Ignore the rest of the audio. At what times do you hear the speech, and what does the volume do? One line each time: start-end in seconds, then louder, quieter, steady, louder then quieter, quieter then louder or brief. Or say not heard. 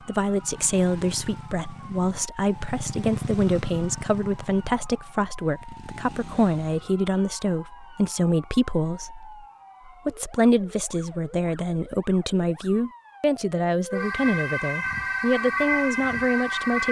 0.1-16.8 steady.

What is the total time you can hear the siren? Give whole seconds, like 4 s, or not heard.
17 s.